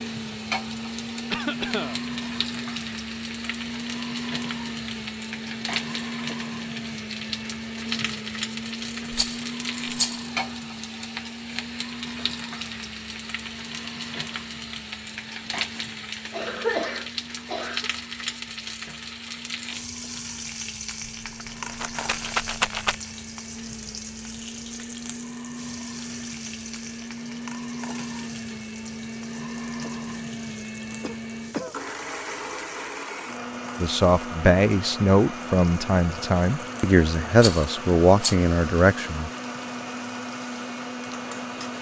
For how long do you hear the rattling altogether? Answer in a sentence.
You can hear the rattling for 4 seconds altogether.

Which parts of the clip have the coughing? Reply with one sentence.
You can hear the coughing from 1.3 to 2.0 s, from 16.3 to 17.9 s and from 30.9 to 31.8 s.